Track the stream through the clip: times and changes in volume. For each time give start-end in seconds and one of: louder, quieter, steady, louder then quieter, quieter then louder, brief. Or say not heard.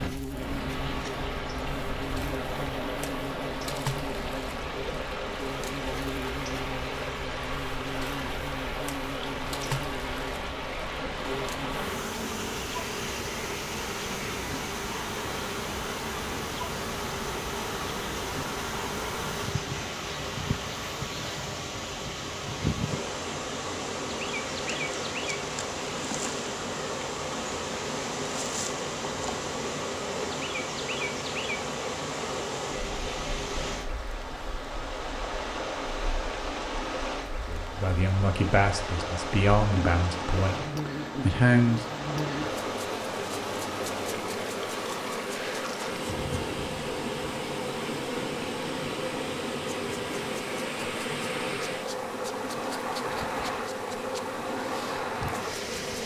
0.0-56.0 steady.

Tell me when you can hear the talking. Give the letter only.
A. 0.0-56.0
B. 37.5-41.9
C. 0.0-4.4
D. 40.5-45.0
B.